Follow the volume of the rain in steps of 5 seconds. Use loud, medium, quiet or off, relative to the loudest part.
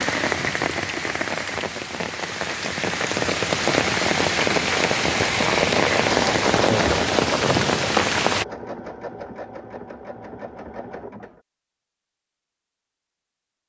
loud, loud, off.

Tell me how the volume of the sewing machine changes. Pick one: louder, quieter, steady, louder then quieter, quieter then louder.
quieter.